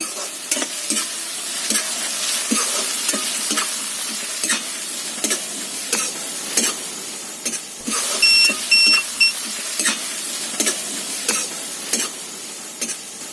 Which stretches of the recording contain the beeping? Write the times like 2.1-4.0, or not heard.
7.8-9.3.